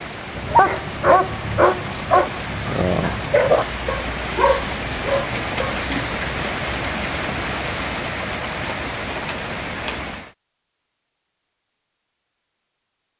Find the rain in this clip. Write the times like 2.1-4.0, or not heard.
0.0-10.3.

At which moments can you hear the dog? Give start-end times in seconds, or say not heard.
0.3-5.8.